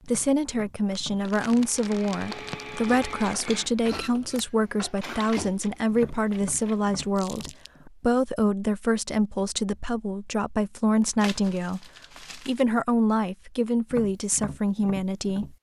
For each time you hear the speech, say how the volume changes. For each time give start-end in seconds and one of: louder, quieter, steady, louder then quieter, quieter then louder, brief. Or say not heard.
0.1-15.5 steady.